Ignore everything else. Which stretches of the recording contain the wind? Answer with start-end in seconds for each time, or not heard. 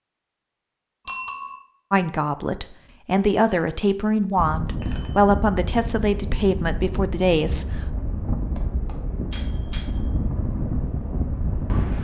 4.3-11.9.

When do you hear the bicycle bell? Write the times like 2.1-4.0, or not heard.
1.1-1.6, 4.8-5.3, 8.6-10.2.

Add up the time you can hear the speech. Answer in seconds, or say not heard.
6 s.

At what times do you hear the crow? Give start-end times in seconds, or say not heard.
not heard.